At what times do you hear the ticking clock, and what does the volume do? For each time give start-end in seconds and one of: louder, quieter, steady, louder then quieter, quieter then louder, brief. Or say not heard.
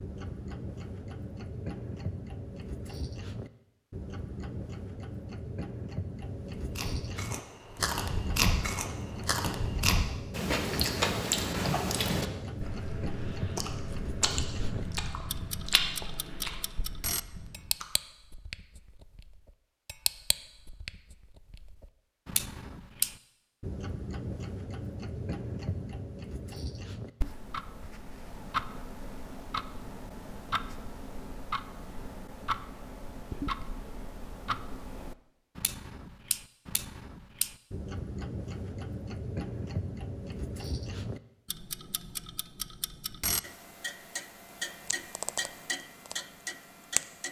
0.0-47.2 steady.